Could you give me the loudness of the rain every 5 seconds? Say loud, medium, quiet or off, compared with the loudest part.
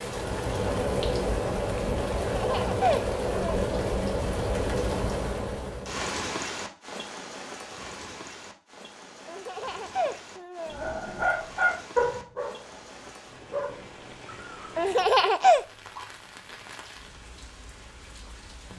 loud, medium, quiet, quiet.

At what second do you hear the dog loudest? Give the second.
12 s.